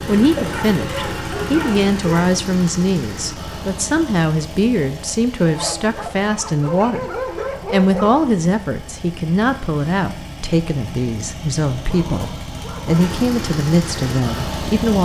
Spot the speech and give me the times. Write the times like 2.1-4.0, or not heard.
0.1-14.9.